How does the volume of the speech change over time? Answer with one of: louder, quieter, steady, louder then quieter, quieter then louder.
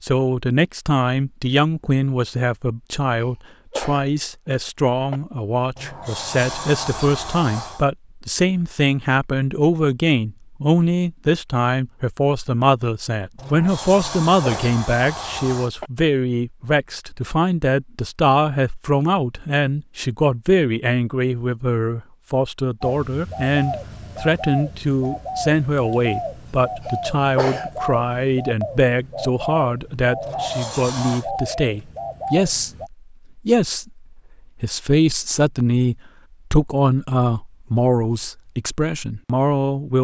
steady.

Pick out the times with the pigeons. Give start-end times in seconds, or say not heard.
22.8-32.9.